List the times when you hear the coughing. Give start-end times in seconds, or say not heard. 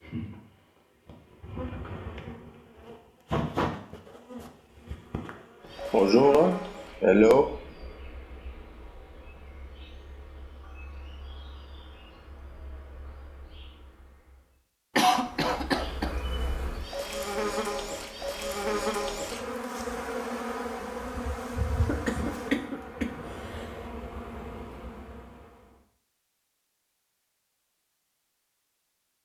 5.9-7.5, 14.9-16.1, 21.9-23.6.